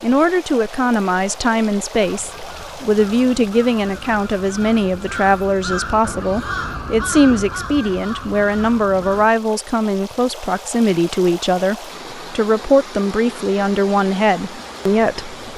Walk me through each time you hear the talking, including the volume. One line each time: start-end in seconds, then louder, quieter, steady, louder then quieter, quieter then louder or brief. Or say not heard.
0.0-15.3 steady.